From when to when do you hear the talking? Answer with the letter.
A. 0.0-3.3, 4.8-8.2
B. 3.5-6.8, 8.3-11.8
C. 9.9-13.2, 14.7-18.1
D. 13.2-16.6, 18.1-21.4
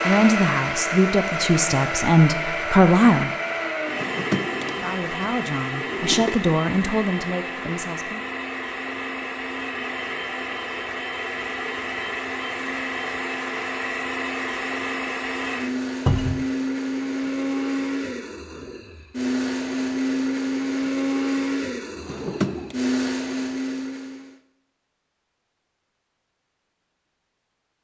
A.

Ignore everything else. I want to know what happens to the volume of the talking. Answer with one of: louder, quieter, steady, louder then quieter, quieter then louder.
quieter.